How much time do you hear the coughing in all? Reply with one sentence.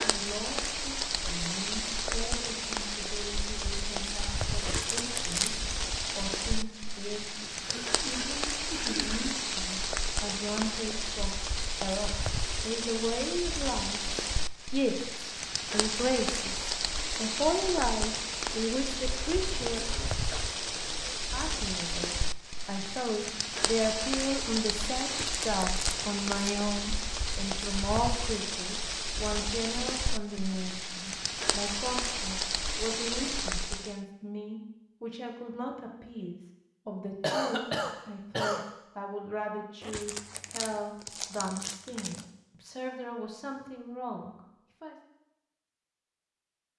The coughing can be heard for 5 seconds in total.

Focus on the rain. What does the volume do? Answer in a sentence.
The volume of the rain stays about the same.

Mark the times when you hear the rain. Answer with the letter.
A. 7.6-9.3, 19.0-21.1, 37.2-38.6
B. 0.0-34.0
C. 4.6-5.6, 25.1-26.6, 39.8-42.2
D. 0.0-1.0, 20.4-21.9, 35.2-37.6
B.